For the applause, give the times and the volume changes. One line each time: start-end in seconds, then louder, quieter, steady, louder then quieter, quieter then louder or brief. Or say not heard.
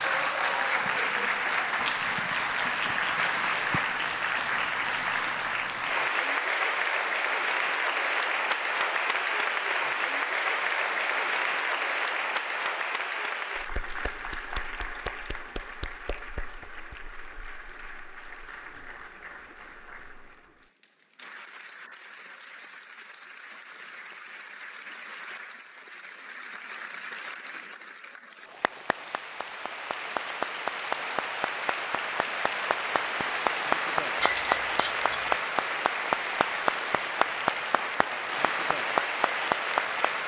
0.0-40.2 quieter then louder.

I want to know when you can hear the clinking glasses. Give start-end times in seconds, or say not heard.
34.2-35.4.